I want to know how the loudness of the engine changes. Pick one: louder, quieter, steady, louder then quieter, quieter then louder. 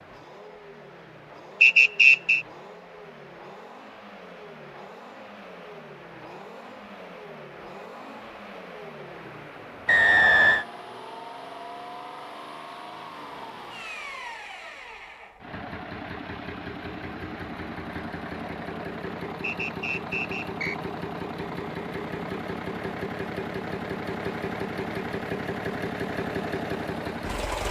louder.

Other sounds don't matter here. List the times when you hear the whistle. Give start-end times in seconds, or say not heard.
1.6-2.5, 9.8-10.7, 19.4-20.8.